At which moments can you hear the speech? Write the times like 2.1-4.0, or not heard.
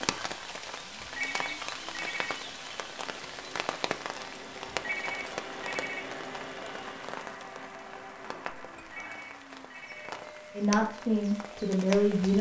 10.6-12.3.